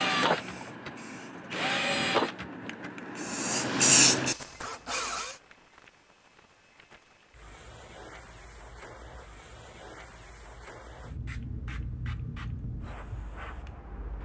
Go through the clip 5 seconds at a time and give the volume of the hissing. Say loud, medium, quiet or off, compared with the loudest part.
loud, quiet, quiet.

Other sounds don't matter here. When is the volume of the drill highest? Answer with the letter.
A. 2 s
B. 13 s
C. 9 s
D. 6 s
A.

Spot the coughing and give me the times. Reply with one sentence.
You can't hear the coughing here.